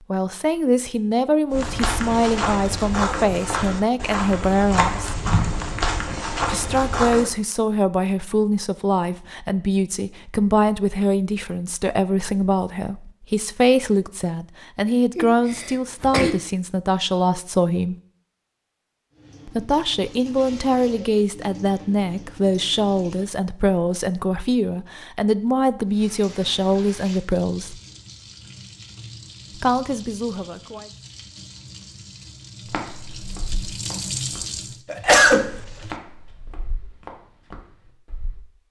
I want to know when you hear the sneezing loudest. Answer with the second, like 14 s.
35 s.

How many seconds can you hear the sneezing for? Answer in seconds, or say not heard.
2 s.